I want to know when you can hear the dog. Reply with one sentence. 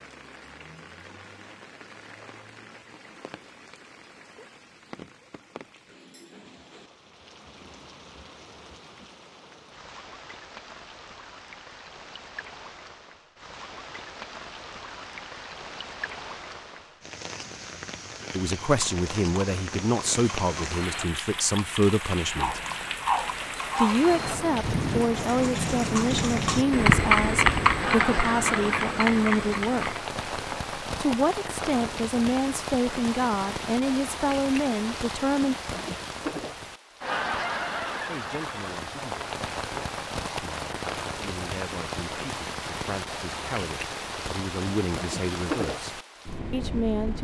The dog can be heard from 22.4 to 24.0 s.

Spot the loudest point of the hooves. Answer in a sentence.
The volume of the hooves peaks at 27 seconds.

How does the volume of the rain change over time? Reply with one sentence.
The loudness of the rain goes up.